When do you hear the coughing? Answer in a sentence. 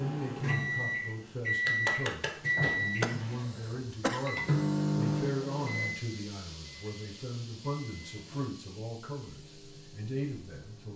The coughing can be heard from 3.0 to 5.0 s.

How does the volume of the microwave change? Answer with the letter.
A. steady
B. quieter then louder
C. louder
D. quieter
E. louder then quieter
D.